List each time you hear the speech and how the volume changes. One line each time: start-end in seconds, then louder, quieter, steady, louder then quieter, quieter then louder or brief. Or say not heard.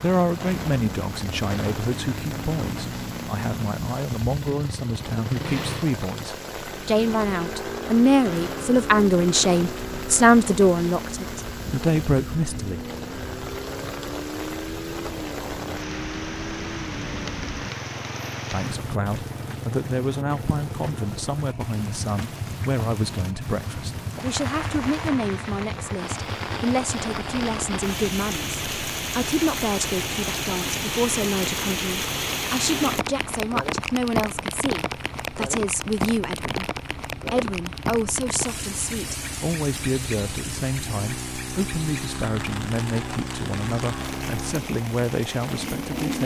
0.0-12.8 louder
18.5-46.2 steady.